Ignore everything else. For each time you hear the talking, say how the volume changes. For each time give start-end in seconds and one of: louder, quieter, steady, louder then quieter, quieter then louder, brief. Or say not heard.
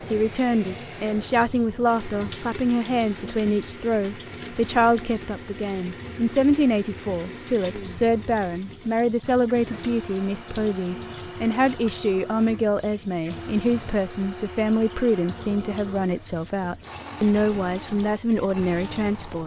0.1-19.4 steady.